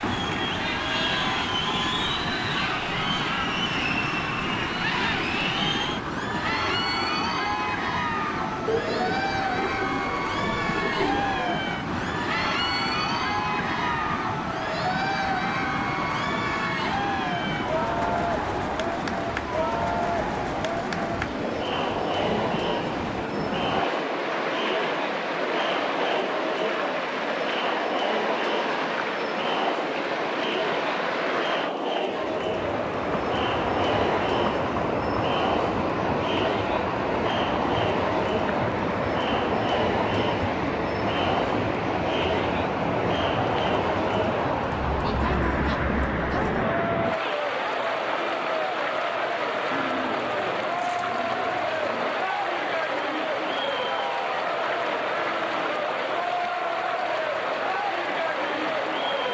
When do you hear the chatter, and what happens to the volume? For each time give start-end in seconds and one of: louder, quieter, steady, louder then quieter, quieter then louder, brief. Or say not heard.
0.0-59.2 steady.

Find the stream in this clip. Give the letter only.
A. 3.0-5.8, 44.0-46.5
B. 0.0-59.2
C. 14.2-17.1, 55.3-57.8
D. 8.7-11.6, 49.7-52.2
B.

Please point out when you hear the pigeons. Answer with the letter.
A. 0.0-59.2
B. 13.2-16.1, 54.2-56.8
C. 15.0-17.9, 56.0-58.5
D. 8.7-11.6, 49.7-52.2
D.